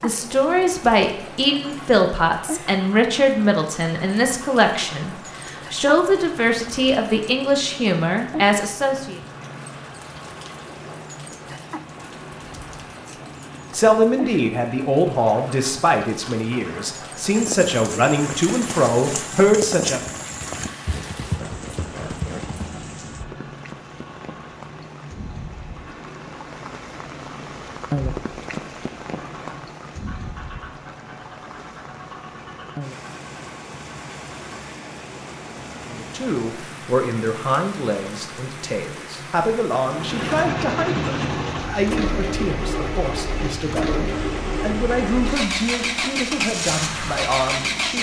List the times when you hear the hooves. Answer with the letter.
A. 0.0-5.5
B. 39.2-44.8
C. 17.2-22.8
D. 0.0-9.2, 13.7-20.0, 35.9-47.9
C.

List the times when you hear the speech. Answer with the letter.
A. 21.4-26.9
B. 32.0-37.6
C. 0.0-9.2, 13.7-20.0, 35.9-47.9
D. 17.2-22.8
C.